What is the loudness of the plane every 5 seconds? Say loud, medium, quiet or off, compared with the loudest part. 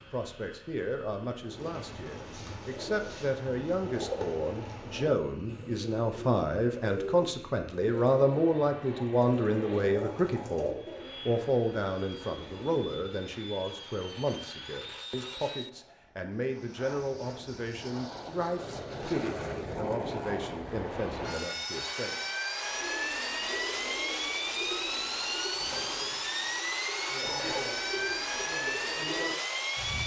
quiet, quiet, quiet, medium, loud, loud.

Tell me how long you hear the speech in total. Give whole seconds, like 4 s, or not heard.
22 s.